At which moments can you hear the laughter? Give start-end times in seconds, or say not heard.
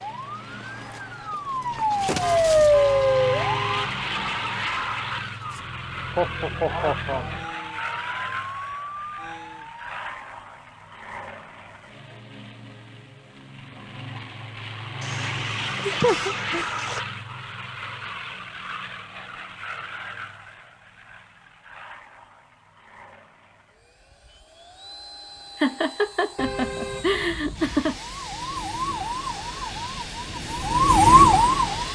6.2-7.3, 15.8-16.6, 25.6-27.9.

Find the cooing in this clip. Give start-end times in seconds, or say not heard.
not heard.